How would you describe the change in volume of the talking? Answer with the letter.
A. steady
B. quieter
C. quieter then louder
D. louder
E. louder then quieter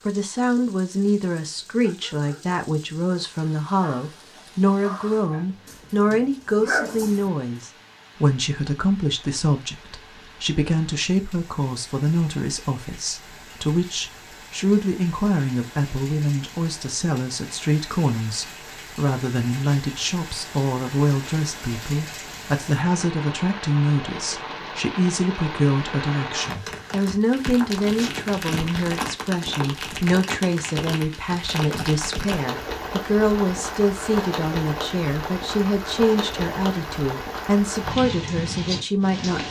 A.